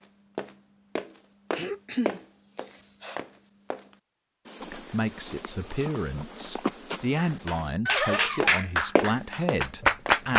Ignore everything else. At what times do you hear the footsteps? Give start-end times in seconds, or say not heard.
0.3-3.9, 4.5-7.7, 8.4-10.2.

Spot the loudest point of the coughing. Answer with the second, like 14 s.
2 s.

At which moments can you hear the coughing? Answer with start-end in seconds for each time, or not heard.
1.5-3.2.